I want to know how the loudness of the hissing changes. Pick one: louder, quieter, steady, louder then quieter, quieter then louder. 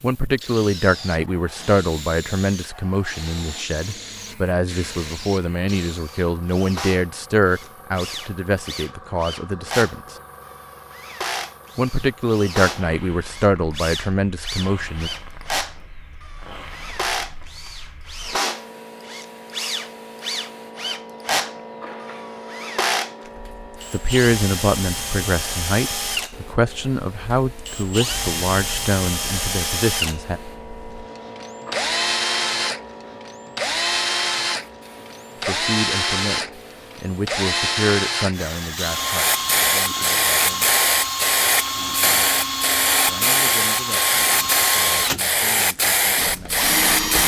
louder.